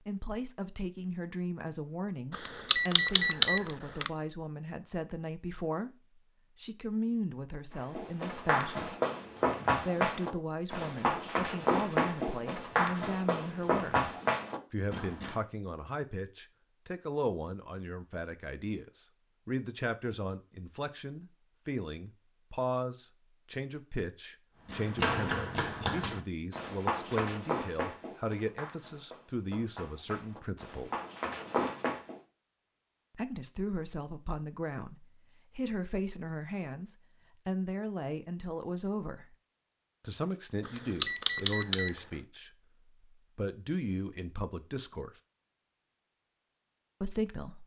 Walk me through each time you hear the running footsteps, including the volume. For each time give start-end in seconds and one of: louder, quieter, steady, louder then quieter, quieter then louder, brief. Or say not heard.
7.8-15.3 steady
24.6-32.1 quieter then louder.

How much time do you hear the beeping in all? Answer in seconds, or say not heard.
3 s.